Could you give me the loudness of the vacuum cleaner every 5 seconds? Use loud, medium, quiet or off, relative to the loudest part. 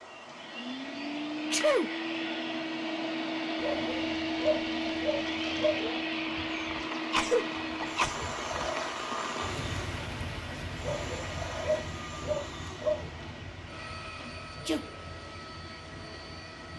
loud, loud, medium, quiet.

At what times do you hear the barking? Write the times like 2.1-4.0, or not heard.
3.6-6.0, 10.8-13.1.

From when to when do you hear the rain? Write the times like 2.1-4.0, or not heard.
0.0-16.7.